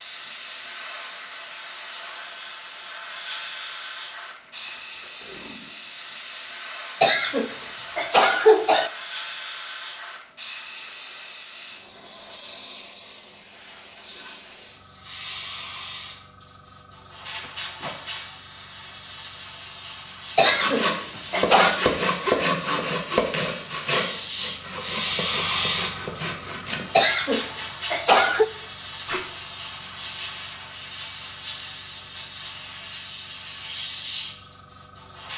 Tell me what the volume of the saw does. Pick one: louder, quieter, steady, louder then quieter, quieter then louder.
quieter.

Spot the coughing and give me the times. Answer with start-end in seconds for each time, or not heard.
7.0-8.9, 20.4-21.8, 26.9-28.4.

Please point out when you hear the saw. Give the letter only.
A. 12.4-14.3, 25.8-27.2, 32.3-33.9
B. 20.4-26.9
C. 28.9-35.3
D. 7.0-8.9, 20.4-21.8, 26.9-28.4
B.